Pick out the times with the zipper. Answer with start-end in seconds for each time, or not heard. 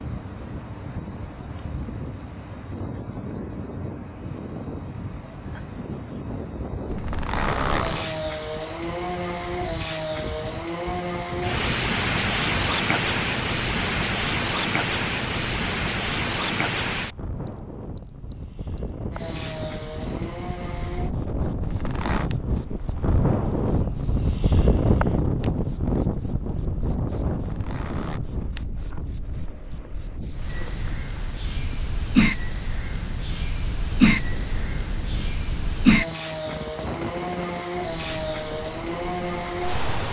6.8-8.1, 21.6-22.3, 27.3-28.2.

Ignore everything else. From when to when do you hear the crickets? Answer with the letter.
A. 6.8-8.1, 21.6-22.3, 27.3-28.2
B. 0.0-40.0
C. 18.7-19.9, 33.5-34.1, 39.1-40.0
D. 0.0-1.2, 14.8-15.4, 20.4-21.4
B.